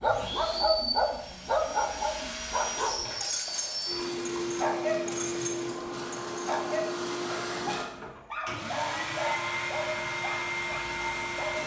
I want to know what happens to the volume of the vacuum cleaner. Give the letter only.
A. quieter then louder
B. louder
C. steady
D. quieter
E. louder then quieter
C.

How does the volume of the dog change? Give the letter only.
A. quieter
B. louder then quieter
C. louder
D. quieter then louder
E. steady
A.